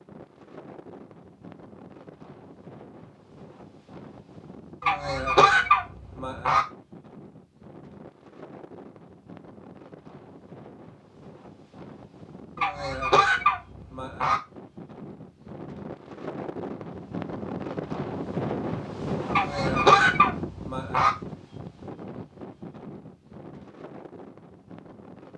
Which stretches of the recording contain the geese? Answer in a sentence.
The geese can be heard from 4.8 to 6.7 s, from 12.6 to 14.4 s and from 19.3 to 21.1 s.